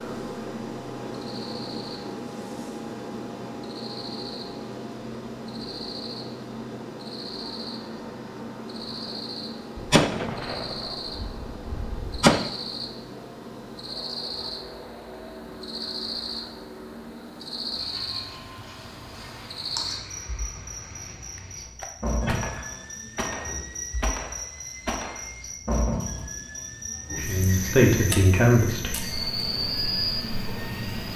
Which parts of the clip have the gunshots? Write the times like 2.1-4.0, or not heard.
9.8-12.4, 21.4-25.2.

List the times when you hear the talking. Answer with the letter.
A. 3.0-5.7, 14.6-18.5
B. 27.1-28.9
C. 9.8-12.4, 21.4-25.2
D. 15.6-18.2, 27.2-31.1
B.